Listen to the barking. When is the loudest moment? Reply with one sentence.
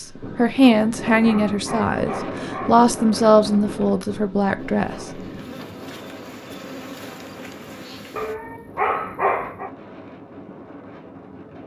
The volume of the barking peaks at 9 seconds.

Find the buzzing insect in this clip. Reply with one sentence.
You can hear the buzzing insect from 4.5 to 8.3 s.